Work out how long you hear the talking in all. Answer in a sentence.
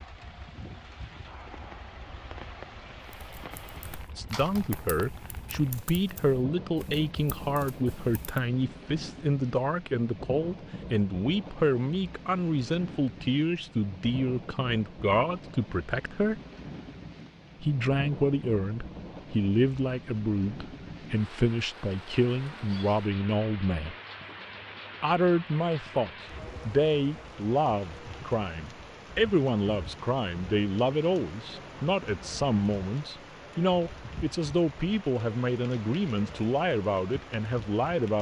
You can hear the talking for 32 seconds altogether.